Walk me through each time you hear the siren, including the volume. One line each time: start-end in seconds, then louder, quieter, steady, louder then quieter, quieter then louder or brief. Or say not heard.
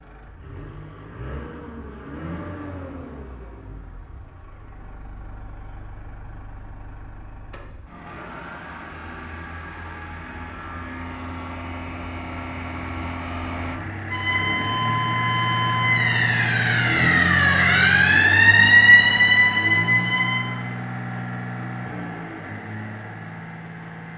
14.1-20.4 louder.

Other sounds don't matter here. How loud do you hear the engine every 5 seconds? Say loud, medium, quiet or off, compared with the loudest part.
quiet, quiet, medium, loud, medium.